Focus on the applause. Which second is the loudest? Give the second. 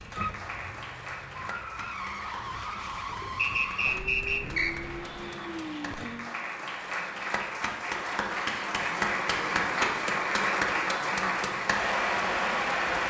10 s.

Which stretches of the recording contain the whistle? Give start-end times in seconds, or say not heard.
3.4-4.8.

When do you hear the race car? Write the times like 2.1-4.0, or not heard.
0.0-6.3.